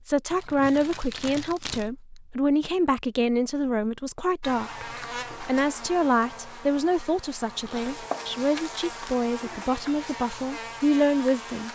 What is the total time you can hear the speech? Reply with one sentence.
The speech can be heard for 12 seconds in total.